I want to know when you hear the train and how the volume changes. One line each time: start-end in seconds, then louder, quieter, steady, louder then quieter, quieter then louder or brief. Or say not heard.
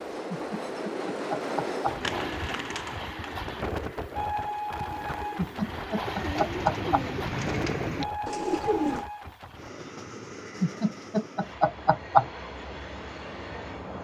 0.0-13.9 quieter.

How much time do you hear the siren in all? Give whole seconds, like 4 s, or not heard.
not heard.